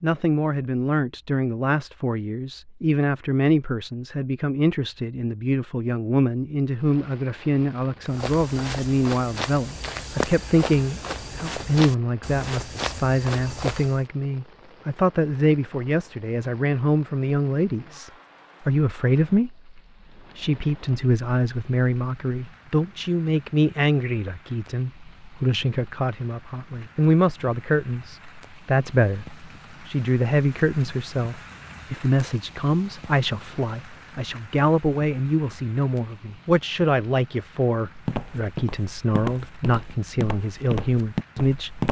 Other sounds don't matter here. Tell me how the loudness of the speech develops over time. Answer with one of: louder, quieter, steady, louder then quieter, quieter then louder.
steady.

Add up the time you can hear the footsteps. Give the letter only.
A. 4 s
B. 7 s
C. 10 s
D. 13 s
C.